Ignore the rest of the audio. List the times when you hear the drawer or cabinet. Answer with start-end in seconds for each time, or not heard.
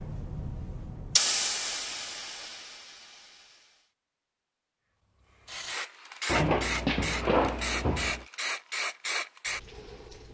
6.2-8.2.